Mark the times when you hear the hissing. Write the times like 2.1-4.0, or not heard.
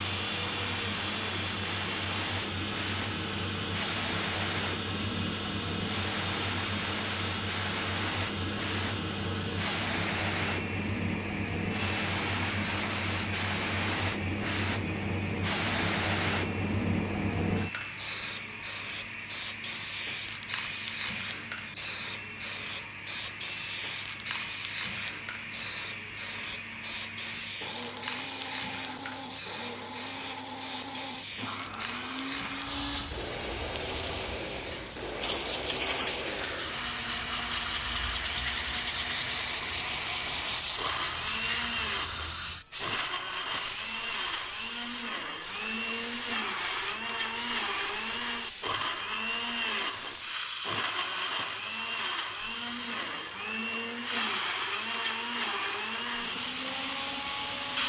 0.0-57.8.